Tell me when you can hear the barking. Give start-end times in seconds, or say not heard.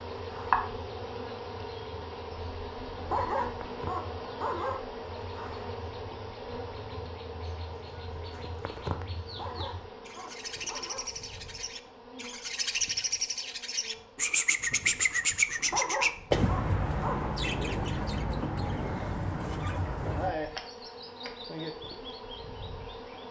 3.0-4.8, 9.2-11.1, 15.6-17.4.